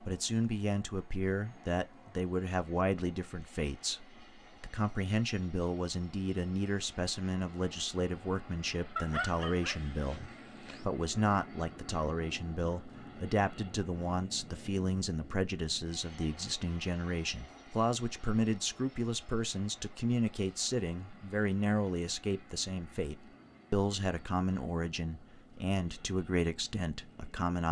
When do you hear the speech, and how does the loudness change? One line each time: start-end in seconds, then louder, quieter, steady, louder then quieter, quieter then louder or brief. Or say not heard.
0.0-27.6 steady.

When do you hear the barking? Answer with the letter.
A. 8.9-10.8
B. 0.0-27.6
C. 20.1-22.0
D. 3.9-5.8
A.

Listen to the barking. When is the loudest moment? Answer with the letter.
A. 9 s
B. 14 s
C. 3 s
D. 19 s
A.